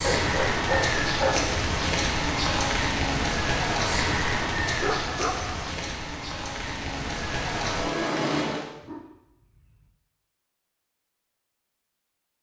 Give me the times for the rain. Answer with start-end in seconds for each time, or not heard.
0.0-8.7.